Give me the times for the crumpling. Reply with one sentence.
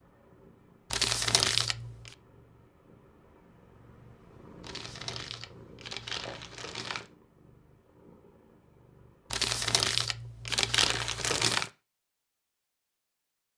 You can hear the crumpling from 0.9 to 2.1 s, from 4.6 to 7.1 s and from 9.3 to 11.7 s.